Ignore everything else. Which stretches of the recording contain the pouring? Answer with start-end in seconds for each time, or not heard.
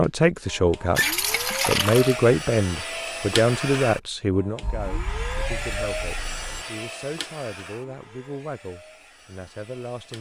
0.9-2.2, 6.2-6.8.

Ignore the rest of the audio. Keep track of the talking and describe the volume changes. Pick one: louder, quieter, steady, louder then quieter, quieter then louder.
quieter.